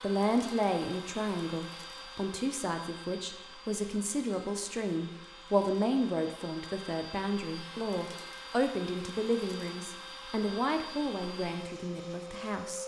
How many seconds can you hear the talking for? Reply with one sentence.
The talking can be heard for 13 seconds in total.